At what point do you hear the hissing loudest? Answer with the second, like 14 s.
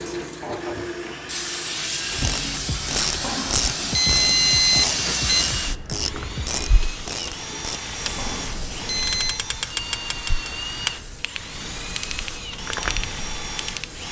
5 s.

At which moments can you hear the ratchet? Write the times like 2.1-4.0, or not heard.
2.1-13.9.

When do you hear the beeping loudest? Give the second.
5 s.